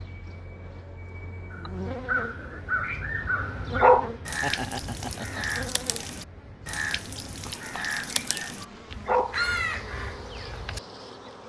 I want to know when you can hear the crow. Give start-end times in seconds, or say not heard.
1.5-10.8.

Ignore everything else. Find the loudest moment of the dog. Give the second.
4 s.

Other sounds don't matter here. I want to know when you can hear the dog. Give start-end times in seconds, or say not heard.
2.9-4.1, 8.1-9.3.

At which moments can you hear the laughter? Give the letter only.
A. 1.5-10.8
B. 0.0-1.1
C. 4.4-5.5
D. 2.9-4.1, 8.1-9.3
C.